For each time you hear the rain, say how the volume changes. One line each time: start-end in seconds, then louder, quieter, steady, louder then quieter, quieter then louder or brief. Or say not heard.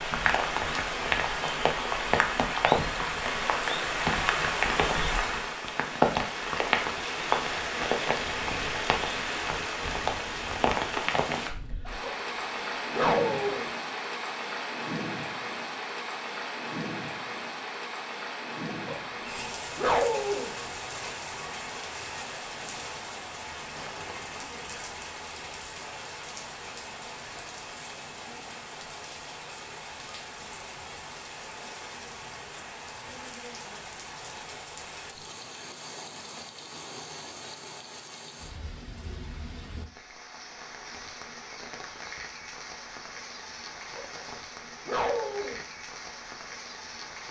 0.0-47.2 quieter.